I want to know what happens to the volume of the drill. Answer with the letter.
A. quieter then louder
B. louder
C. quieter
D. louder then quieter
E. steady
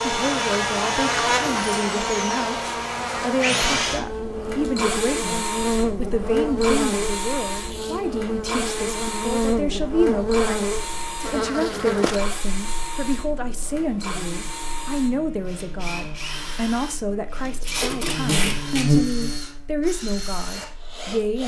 C.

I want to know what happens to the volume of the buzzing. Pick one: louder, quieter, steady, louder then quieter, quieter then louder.
quieter then louder.